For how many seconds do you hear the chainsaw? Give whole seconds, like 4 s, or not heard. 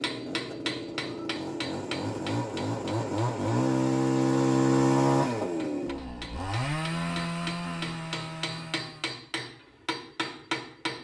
9 s.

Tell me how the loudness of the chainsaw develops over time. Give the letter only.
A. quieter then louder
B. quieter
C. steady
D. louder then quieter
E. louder
D.